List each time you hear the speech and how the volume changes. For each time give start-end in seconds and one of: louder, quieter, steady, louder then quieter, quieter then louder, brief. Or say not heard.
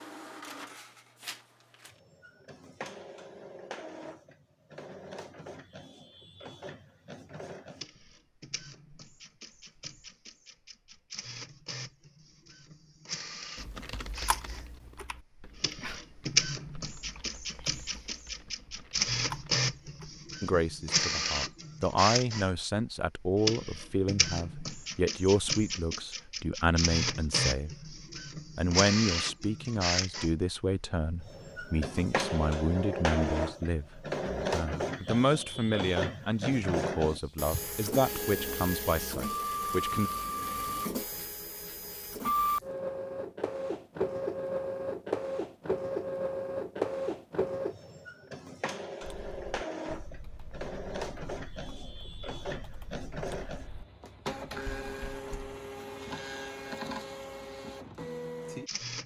20.4-27.8 steady
28.6-40.1 steady.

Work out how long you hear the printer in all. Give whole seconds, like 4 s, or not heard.
59 s.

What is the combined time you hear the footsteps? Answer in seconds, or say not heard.
not heard.